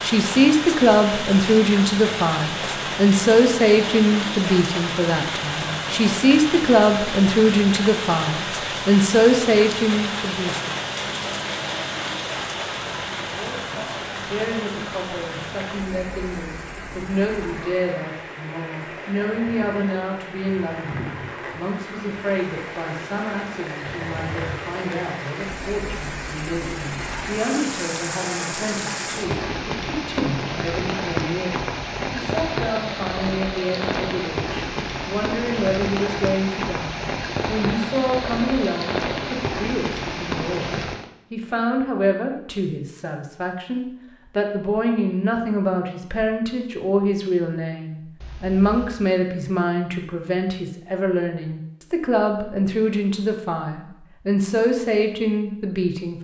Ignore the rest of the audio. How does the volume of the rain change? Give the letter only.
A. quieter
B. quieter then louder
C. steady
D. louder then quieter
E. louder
B.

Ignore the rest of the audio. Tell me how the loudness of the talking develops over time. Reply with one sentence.
The loudness of the talking goes down, then up.